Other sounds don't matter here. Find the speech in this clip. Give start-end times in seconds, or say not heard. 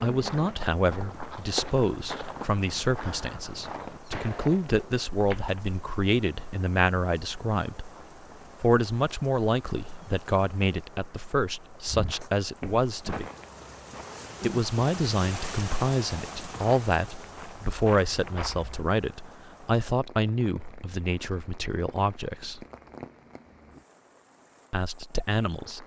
0.0-7.9, 8.6-13.3, 14.4-22.6, 24.7-25.8.